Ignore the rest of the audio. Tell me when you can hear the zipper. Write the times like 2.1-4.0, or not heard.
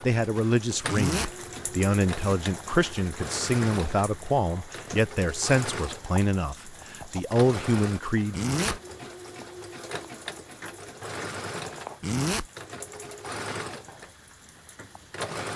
0.8-1.4, 8.3-8.8, 12.0-12.5.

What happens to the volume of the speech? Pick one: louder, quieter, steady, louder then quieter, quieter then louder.
steady.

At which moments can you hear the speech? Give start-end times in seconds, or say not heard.
0.0-8.3.